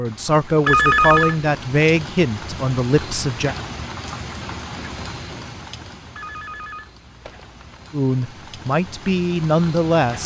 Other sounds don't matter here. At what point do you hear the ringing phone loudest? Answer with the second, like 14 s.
1 s.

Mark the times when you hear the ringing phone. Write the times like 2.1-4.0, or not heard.
0.7-1.4, 6.2-7.8.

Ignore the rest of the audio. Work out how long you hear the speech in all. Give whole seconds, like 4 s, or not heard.
6 s.